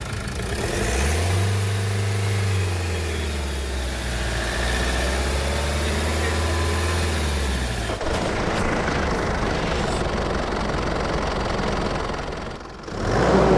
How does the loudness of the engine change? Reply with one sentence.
The volume of the engine stays about the same.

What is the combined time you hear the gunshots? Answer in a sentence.
You can hear the gunshots for 2 seconds altogether.